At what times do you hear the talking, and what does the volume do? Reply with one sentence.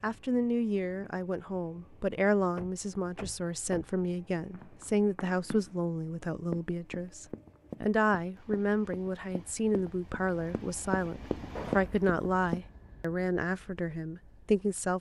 The talking can be heard from 0.0 to 14.9 s, at a steady volume.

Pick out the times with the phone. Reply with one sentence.
The phone can't be heard in this clip.